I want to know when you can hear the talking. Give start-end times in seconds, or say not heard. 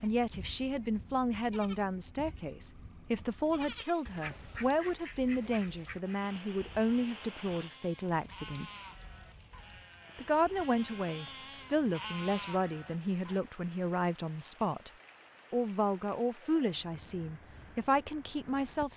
0.0-8.7, 10.2-14.9, 15.5-18.9.